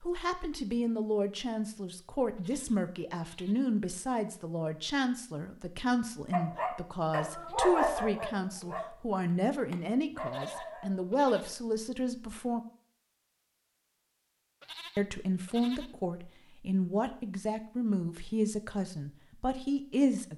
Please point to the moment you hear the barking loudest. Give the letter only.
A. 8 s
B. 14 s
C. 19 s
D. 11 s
A.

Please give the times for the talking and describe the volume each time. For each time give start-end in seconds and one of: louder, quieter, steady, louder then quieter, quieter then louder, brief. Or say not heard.
0.0-12.6 steady
14.9-20.3 steady.